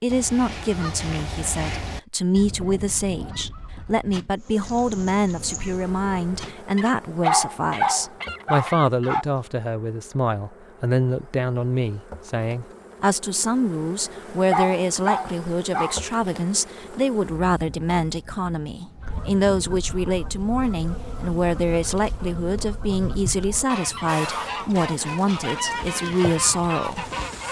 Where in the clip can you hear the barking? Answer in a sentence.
You can hear the barking from 7.2 to 9.2 s and from 14.5 to 16.0 s.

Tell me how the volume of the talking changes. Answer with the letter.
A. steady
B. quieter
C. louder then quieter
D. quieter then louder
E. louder
A.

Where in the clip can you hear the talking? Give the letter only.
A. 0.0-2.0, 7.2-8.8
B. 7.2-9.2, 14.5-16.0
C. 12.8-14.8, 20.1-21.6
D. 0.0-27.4
D.